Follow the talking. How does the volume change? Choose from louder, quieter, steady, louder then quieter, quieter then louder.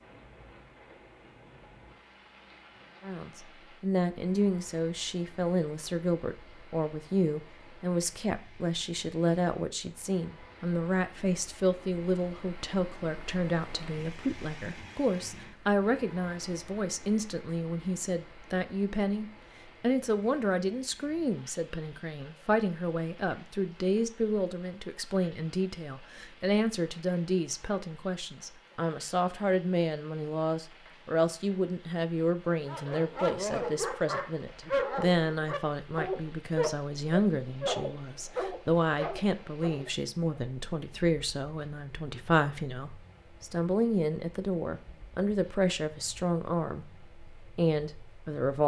steady.